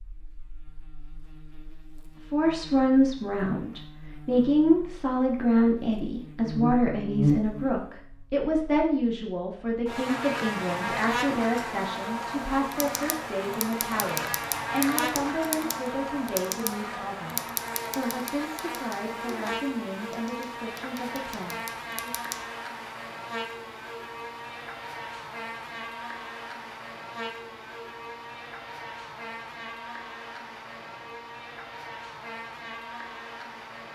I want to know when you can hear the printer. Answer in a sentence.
The printer can't be heard in this clip.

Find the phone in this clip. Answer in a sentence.
You can't hear the phone here.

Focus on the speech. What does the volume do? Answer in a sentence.
The loudness of the speech goes down.